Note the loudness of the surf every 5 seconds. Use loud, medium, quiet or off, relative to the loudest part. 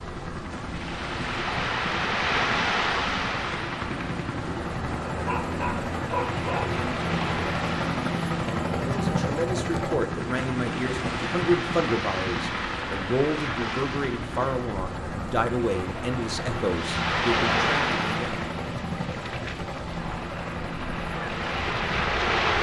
loud, medium, medium, loud, loud.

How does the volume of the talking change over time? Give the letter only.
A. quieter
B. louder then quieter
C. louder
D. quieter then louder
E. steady
E.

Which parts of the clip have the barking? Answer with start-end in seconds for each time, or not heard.
5.1-6.7.